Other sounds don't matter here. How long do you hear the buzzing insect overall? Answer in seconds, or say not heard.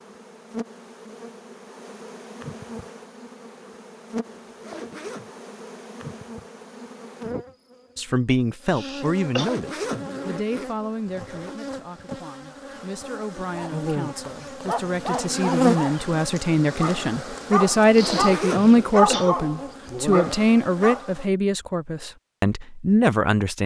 21 s.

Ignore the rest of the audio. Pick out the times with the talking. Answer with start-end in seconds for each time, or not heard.
8.0-23.6.